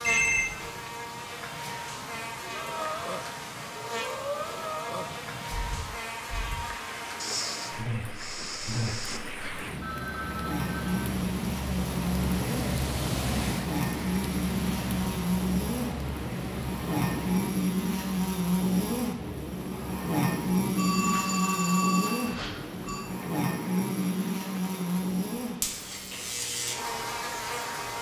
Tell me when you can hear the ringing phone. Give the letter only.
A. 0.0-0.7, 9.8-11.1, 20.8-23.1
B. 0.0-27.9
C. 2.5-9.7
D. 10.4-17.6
A.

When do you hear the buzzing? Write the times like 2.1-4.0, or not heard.
0.0-27.9.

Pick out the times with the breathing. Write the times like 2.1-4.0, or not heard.
2.5-9.7.